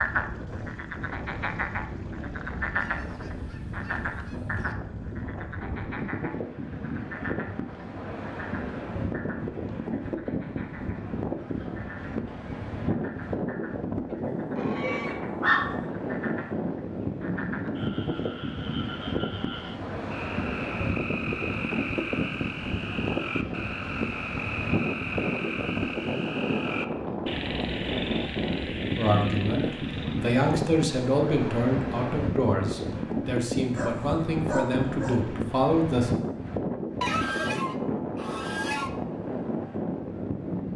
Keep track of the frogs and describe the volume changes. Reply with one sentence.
The loudness of the frogs goes down, then up.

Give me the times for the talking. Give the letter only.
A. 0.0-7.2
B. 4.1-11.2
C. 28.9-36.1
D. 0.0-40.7
C.